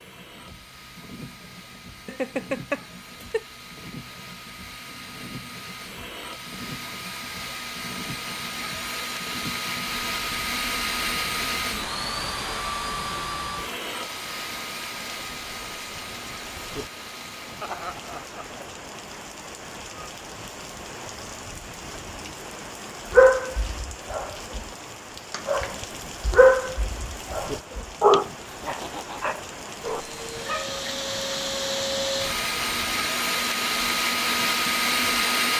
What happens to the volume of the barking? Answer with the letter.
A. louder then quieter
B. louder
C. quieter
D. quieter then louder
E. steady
A.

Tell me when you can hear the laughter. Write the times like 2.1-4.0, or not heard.
2.0-3.5, 17.6-18.7, 28.4-29.4.